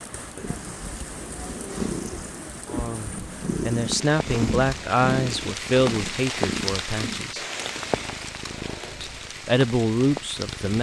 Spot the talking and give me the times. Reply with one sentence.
The talking can be heard from 2.7 to 7.5 s and from 9.0 to 10.7 s.